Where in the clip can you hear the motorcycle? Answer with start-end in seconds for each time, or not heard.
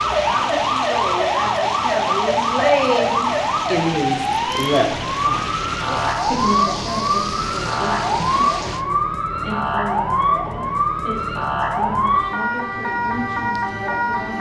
not heard.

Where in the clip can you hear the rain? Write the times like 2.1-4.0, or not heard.
0.0-8.8.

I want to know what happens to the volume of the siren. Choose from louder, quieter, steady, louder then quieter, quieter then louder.
steady.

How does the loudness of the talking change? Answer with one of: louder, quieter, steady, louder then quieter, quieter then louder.
quieter.